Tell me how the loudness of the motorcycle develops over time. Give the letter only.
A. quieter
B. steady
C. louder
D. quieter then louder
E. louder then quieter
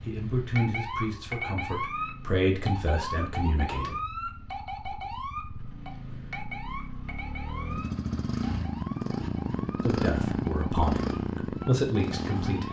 C.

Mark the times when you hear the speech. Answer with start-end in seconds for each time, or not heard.
0.0-4.0, 9.8-12.6.